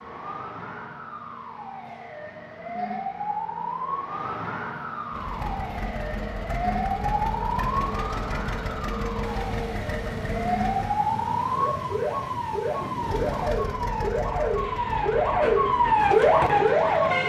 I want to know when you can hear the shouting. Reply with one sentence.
You can't hear the shouting here.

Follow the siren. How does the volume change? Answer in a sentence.
The volume of the siren goes up.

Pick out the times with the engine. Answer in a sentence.
The engine can be heard from 5.1 to 10.9 s and from 13.0 to 17.2 s.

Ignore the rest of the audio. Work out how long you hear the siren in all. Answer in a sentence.
The siren can be heard for 17 seconds in total.